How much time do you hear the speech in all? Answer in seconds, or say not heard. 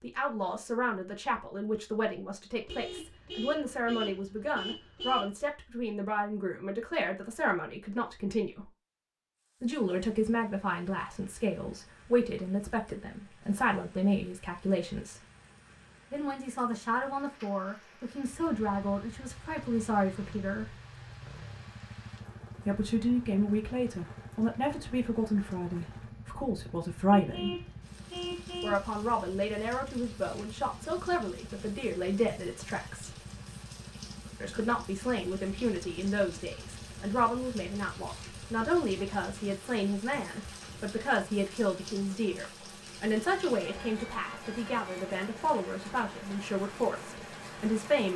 42 s.